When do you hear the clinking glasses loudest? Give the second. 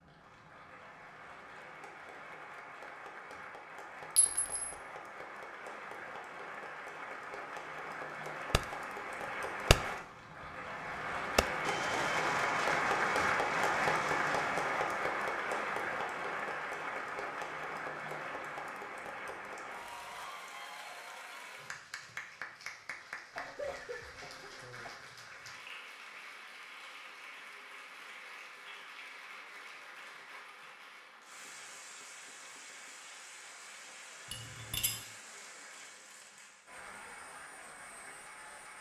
35 s.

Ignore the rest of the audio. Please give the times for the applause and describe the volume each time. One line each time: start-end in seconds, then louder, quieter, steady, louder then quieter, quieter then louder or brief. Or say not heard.
0.0-38.7 louder then quieter.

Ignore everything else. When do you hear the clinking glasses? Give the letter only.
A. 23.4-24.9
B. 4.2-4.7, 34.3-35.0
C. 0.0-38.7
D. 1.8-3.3
B.